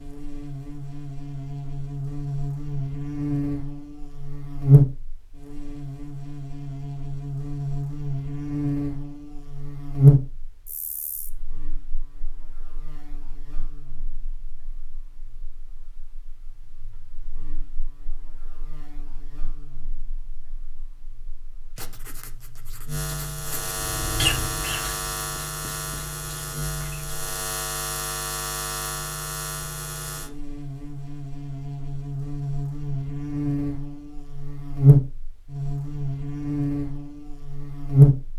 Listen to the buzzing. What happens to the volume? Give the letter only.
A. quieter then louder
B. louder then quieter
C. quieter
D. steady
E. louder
A.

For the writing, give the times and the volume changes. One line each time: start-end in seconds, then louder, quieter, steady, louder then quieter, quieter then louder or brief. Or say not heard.
21.8-27.1 louder then quieter.